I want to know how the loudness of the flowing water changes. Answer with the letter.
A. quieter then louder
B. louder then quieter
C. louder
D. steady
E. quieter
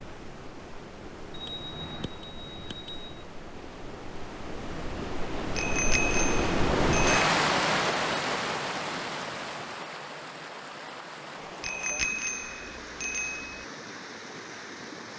B.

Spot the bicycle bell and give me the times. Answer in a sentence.
The bicycle bell can be heard from 1.3 to 3.2 s, from 5.5 to 7.2 s and from 11.6 to 13.6 s.